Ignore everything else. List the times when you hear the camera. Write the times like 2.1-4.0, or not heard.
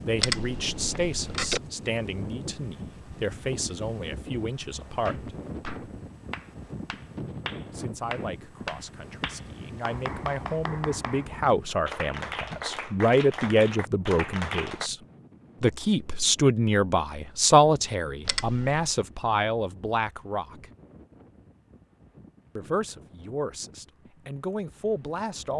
0.2-1.6, 18.2-18.9.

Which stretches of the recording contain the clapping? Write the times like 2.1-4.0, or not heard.
5.0-14.9.